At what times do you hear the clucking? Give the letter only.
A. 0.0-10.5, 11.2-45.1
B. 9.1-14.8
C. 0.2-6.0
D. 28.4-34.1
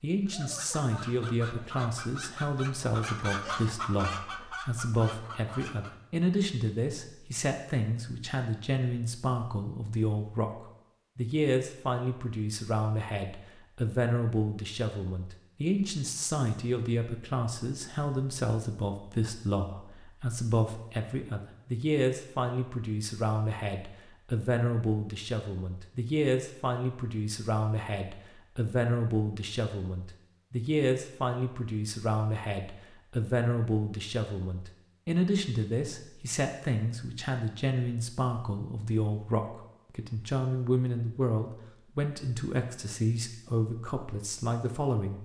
C.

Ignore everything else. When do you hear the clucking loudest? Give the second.
3 s.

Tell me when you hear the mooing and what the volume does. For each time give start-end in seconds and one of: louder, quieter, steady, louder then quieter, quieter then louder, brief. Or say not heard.
not heard.